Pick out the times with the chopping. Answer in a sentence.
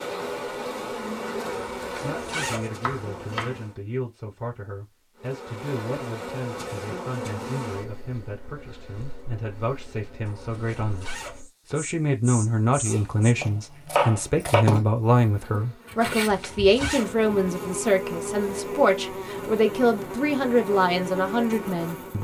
You can hear the chopping from 2.8 to 3.6 s and from 12.8 to 14.7 s.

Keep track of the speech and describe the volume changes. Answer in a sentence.
The loudness of the speech goes up.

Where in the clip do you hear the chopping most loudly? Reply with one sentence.
The loudest moment of the chopping is at 14 seconds.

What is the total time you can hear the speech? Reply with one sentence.
The speech can be heard for 20 seconds in total.